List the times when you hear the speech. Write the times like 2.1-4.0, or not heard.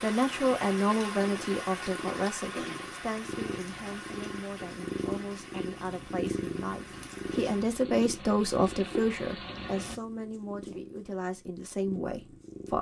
0.0-12.7.